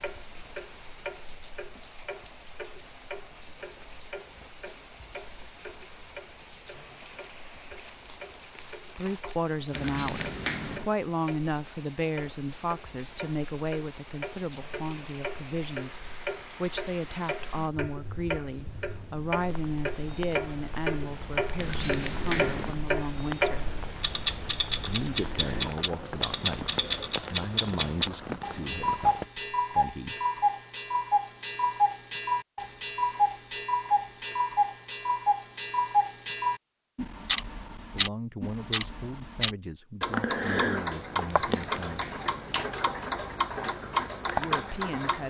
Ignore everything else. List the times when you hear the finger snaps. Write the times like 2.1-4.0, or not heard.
9.7-10.8, 21.6-22.8, 41.4-42.7.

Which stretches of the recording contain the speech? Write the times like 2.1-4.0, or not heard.
8.9-23.8, 24.8-30.2, 37.9-42.1, 44.2-45.2.